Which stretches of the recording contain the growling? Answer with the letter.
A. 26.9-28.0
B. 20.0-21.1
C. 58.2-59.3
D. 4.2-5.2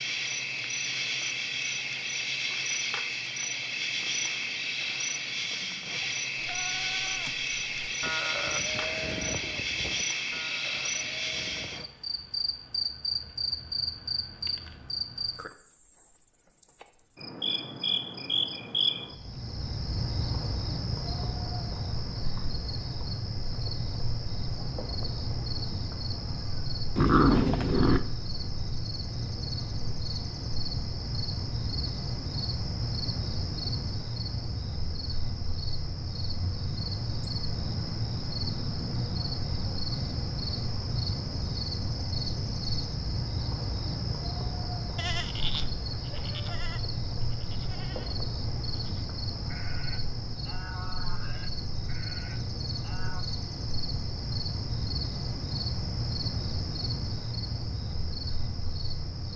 A.